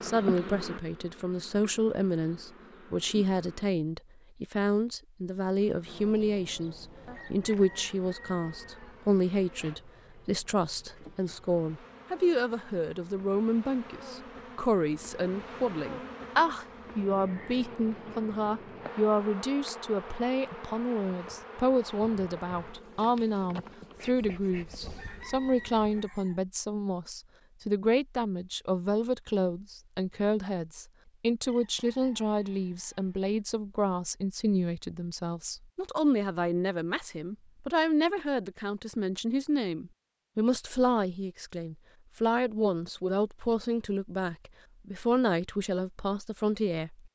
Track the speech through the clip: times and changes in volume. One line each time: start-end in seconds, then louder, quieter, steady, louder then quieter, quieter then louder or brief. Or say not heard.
0.0-47.1 steady.